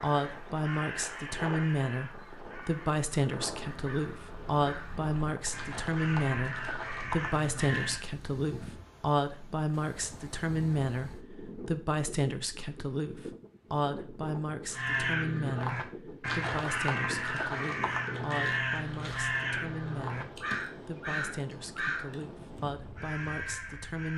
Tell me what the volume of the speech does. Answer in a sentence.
The volume of the speech goes down.